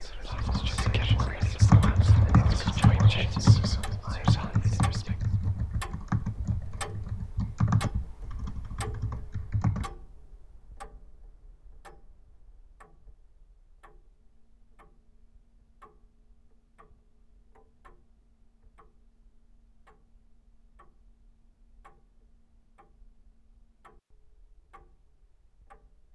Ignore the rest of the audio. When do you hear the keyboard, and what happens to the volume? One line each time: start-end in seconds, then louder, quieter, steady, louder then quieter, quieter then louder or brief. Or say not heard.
0.3-9.9 quieter.